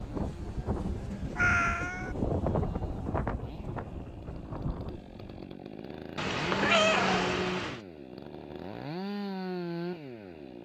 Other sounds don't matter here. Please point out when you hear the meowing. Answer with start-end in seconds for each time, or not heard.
1.4-2.1, 6.2-7.8.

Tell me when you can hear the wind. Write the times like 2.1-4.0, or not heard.
0.0-5.5.